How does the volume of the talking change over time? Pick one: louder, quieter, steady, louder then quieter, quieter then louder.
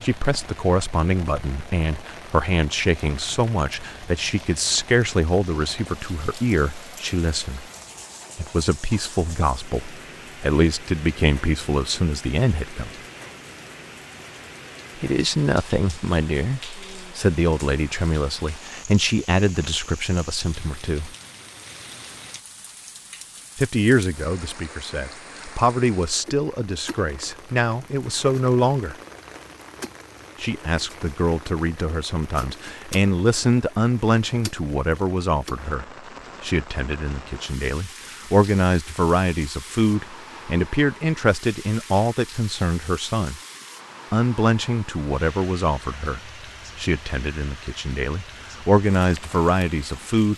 steady.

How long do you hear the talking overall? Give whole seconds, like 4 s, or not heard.
43 s.